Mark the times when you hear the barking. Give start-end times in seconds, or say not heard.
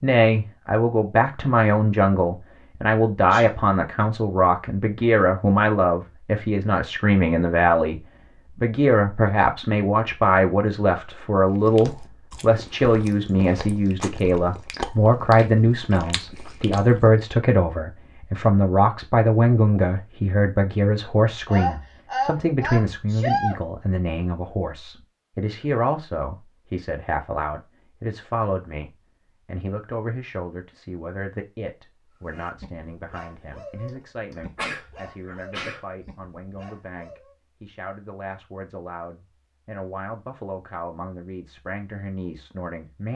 32.2-37.4.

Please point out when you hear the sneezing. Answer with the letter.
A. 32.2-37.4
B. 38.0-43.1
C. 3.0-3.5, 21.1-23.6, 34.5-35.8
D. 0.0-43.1
C.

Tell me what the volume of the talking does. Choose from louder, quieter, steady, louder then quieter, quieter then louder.
quieter.